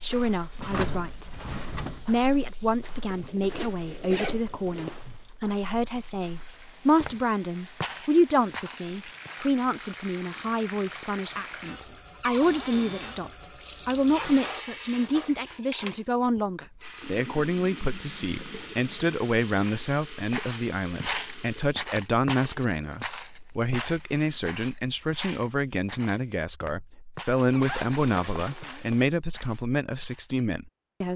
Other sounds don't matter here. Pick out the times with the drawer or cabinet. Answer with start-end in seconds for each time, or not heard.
0.6-2.0, 12.2-13.2, 27.5-28.9.